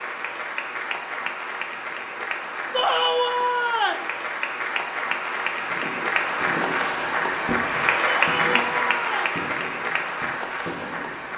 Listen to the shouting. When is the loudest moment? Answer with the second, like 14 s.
3 s.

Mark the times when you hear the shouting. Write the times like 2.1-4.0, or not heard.
2.7-4.0, 8.1-9.4.